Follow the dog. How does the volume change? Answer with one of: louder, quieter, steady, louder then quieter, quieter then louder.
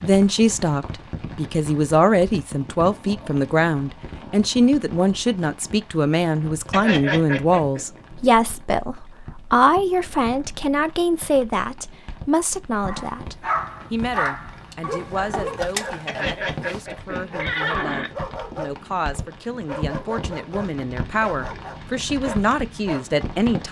quieter.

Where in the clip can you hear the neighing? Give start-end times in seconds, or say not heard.
6.7-7.8, 16.1-18.1.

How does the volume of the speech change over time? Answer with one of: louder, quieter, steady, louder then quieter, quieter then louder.
quieter then louder.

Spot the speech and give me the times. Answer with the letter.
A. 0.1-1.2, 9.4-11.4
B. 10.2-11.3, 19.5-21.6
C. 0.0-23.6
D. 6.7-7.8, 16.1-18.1
C.